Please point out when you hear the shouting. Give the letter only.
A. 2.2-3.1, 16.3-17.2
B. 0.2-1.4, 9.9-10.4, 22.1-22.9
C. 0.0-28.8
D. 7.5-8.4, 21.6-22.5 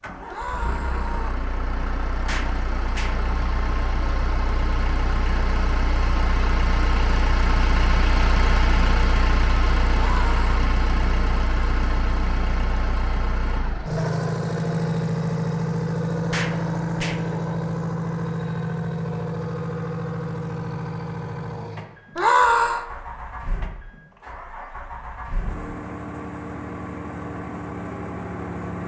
B.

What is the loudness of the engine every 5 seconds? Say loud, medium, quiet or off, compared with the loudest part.
medium, loud, loud, loud, medium, medium.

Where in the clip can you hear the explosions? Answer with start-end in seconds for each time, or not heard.
2.2-3.1, 16.3-17.2.